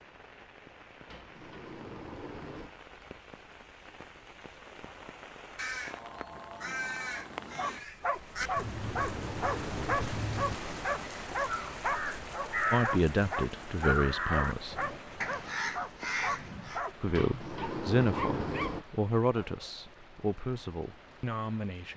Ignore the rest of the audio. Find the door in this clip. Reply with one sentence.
You can hear the door from 1.1 to 2.8 s, from 8.4 to 11.1 s and from 17.1 to 18.9 s.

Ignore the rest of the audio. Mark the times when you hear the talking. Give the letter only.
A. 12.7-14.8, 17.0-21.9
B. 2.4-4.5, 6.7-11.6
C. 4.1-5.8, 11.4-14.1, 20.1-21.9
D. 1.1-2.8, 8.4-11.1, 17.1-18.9
A.